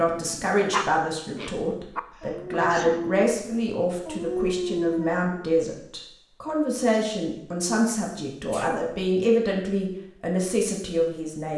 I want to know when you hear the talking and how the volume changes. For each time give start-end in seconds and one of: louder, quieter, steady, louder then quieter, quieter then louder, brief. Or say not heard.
0.0-11.5 steady.